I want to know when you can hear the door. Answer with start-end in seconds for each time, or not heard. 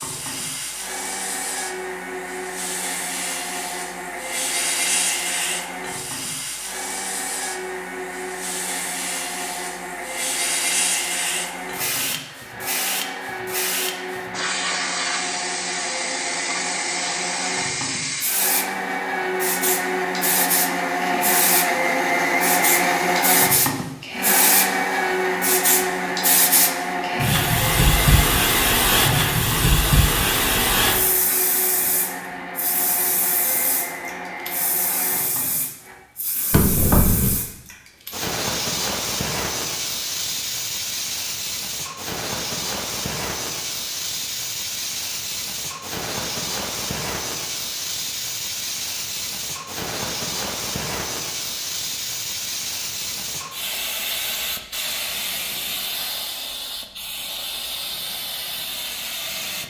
36.5-37.4.